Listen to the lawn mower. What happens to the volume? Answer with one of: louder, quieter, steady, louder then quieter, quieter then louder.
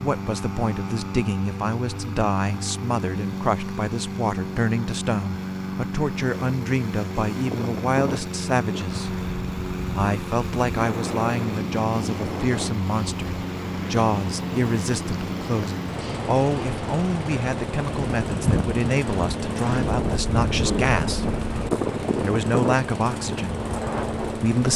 steady.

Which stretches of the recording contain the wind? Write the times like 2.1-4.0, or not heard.
7.4-24.5.